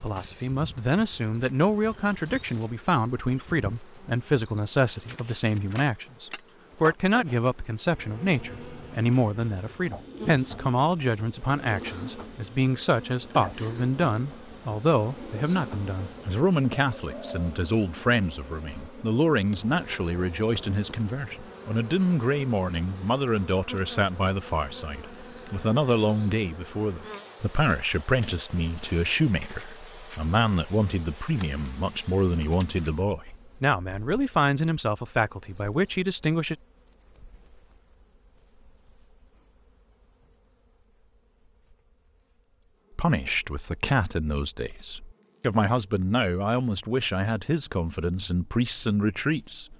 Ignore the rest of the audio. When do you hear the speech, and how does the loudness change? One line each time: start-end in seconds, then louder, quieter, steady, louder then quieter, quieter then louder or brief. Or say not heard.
0.0-36.5 steady
43.0-49.7 steady.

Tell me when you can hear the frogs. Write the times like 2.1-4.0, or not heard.
not heard.